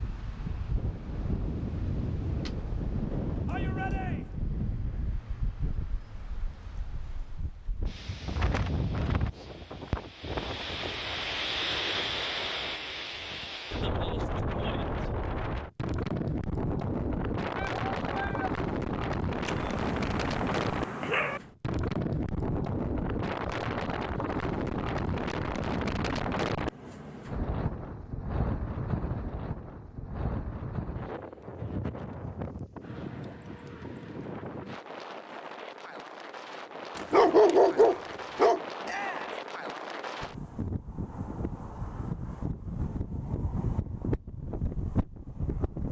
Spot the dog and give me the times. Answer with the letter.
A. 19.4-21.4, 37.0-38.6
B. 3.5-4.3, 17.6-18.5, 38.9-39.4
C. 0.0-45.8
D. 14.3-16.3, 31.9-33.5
A.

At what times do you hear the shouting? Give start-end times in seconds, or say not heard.
3.5-4.3, 17.6-18.5, 38.9-39.4.